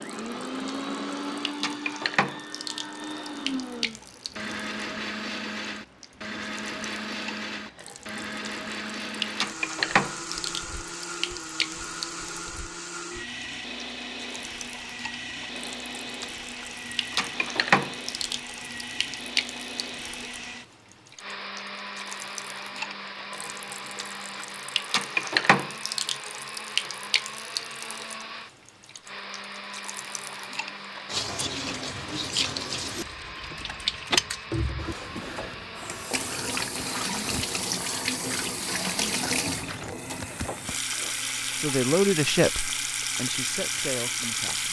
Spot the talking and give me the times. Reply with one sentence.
You can hear the talking from 41.5 to 44.6 s.